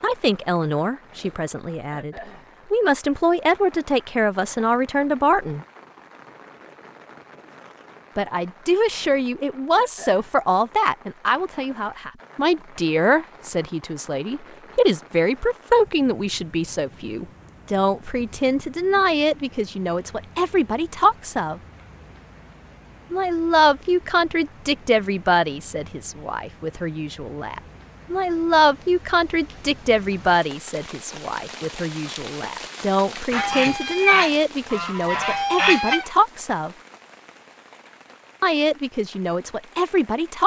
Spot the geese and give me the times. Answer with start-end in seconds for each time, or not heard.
33.3-36.0.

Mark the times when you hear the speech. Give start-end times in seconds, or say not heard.
0.0-5.7, 8.2-21.6, 23.1-36.7, 38.4-40.4.